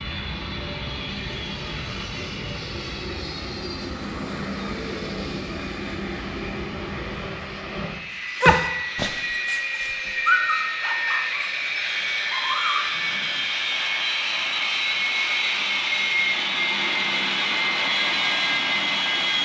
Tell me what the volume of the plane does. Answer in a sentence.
The loudness of the plane goes up.